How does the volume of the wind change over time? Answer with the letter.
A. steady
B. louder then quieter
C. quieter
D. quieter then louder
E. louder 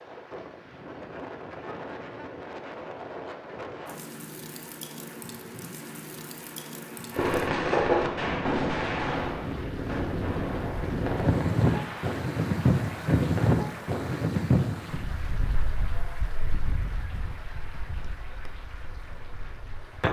B.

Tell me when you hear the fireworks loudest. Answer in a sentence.
The loudest moment of the fireworks is at 8 seconds.